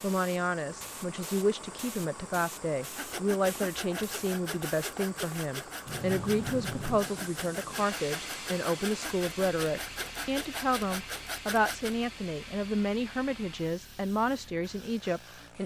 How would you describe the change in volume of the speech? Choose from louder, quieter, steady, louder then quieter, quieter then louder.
steady.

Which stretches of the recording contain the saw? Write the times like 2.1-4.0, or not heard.
2.8-12.1.